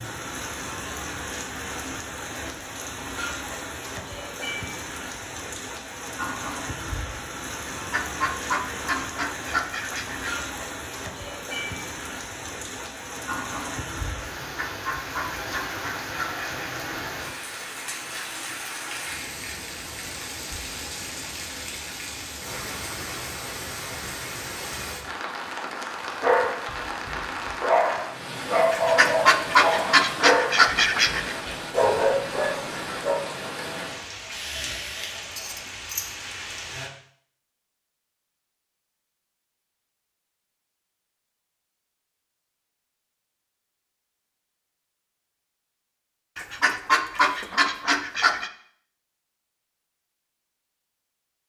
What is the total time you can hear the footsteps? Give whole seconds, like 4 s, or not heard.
not heard.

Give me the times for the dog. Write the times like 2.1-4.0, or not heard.
26.2-33.2.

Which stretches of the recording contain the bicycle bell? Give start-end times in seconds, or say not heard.
not heard.